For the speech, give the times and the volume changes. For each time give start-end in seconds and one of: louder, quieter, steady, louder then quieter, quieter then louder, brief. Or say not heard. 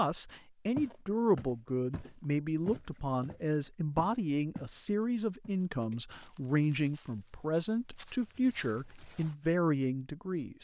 0.0-10.5 steady.